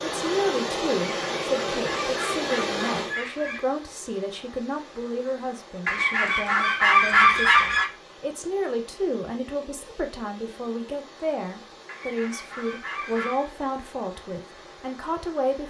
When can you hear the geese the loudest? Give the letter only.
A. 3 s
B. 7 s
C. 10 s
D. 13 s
B.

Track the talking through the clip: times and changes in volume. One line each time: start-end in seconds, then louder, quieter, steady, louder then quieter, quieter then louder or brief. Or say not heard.
0.0-15.6 steady.